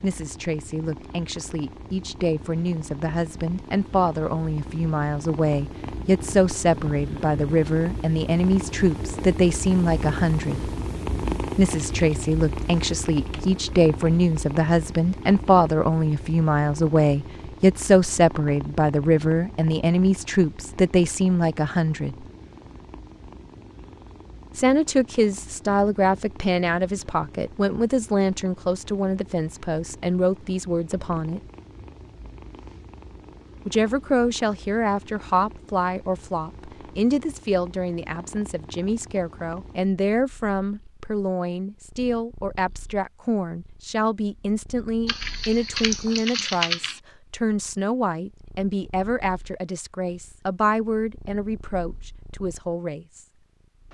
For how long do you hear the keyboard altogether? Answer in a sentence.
You can hear the keyboard for 4 seconds altogether.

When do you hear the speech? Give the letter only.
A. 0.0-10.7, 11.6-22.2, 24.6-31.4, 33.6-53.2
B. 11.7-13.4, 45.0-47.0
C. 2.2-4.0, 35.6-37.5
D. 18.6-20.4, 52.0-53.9
A.